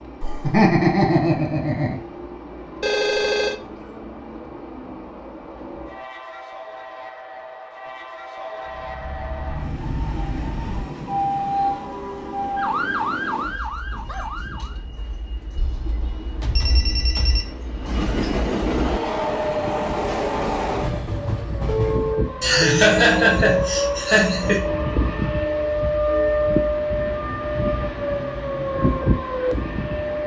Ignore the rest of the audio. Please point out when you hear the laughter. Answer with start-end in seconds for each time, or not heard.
0.2-2.0, 22.4-24.6.